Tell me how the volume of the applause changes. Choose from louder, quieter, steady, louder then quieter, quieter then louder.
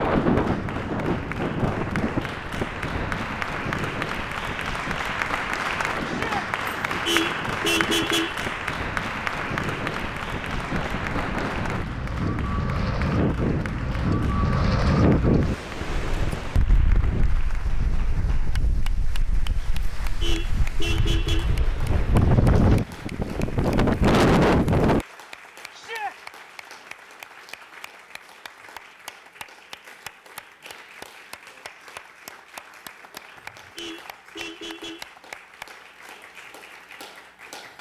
quieter.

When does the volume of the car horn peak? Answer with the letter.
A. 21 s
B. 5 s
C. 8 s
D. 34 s
C.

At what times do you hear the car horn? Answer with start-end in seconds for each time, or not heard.
6.9-8.4, 20.1-21.6, 33.4-35.1.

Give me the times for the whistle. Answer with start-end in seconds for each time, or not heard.
not heard.